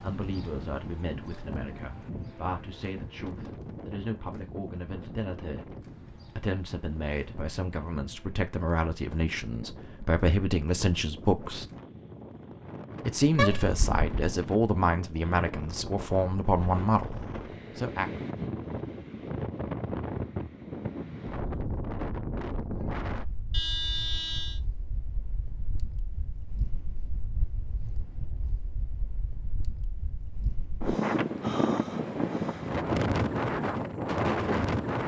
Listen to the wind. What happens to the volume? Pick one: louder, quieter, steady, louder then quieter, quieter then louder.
louder.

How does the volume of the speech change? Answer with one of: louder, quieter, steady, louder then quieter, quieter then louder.
louder.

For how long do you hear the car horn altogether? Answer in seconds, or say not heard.
2 s.